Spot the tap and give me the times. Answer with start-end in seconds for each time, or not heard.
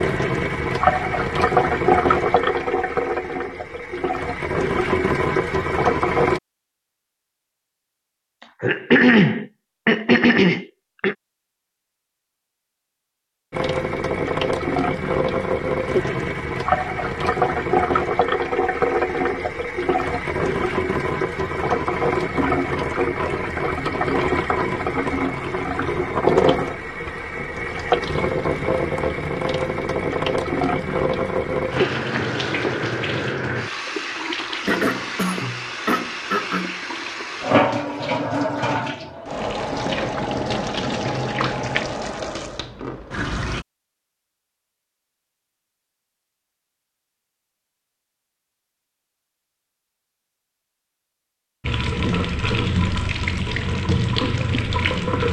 0.0-6.4, 13.5-43.6, 51.6-55.2.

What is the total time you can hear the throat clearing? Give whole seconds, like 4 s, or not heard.
5 s.